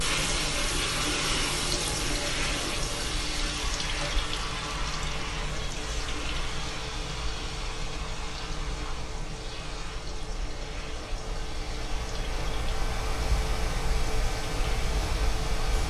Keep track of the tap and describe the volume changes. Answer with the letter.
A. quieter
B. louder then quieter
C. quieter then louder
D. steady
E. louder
A.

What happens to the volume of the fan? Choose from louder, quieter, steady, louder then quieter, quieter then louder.
louder.